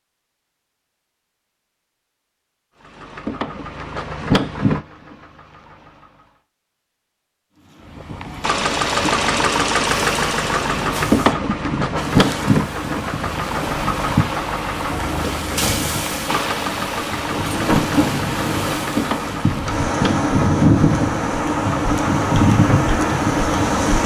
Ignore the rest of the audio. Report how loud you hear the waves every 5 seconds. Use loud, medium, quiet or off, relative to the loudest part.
off, quiet, medium, medium, loud.